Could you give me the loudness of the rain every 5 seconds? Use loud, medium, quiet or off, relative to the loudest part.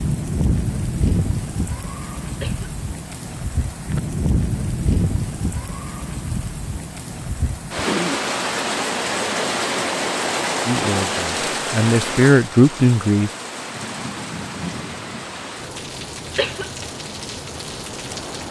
loud, loud, loud, medium.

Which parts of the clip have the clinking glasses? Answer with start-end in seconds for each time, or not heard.
not heard.